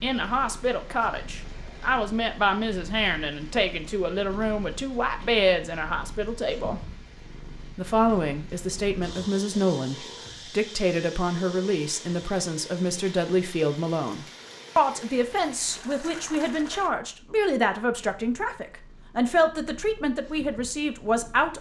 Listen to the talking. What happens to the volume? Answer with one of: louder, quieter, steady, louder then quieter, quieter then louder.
steady.